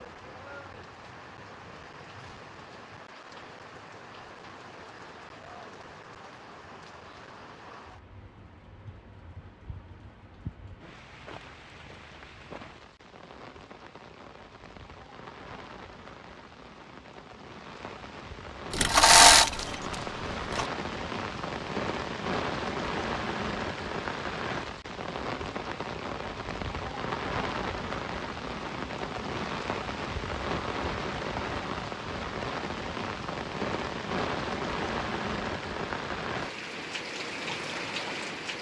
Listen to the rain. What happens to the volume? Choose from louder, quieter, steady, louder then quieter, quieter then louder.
louder.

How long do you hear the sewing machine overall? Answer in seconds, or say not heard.
2 s.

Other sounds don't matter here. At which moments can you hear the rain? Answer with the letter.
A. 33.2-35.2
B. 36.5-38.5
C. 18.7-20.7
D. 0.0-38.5
D.